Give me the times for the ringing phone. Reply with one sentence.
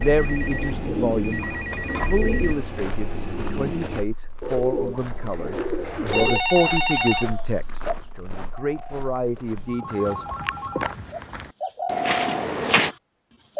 You can hear the ringing phone from 0.0 to 2.5 s, from 6.1 to 7.3 s and from 9.6 to 11.2 s.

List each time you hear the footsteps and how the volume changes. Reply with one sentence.
You can hear the footsteps from 2.6 to 12.9 s, getting louder.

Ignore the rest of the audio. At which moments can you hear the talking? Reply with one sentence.
The talking can be heard from 0.0 to 10.2 s.